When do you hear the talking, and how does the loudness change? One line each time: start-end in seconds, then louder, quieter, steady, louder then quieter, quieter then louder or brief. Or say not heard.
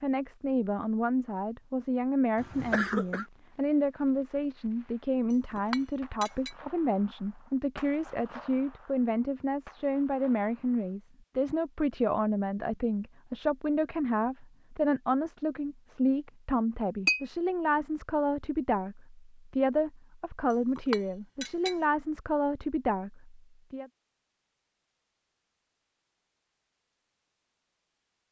0.0-23.9 steady.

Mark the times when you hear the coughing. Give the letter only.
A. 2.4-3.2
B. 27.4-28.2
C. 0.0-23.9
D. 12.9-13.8
A.